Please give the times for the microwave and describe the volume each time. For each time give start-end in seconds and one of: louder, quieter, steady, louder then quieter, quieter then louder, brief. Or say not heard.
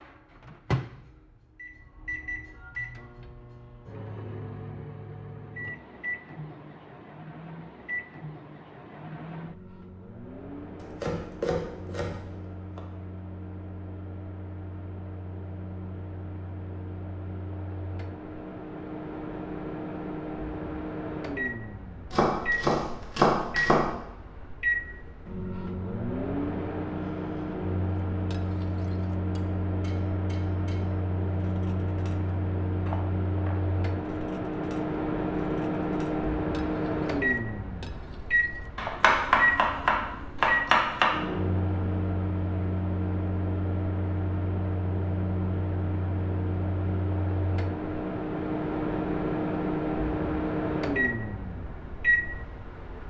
0.0-53.0 louder.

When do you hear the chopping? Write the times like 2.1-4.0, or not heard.
10.8-12.8, 22.1-23.9, 38.8-41.1.